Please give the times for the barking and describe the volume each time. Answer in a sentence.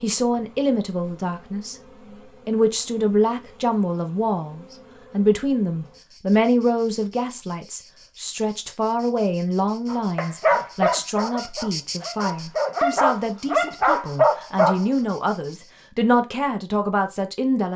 You can hear the barking from 9.9 to 14.8 s, getting quieter then louder.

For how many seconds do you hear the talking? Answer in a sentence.
The talking can be heard for 17 seconds in total.